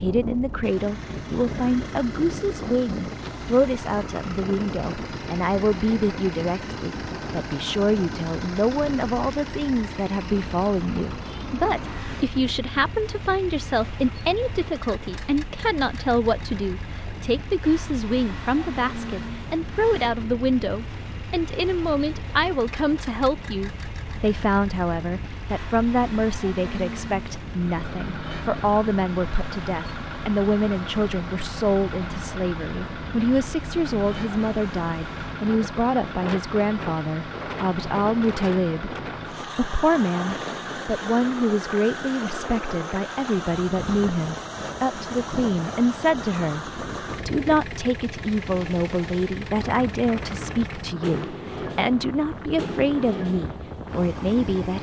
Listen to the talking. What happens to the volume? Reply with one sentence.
The volume of the talking stays about the same.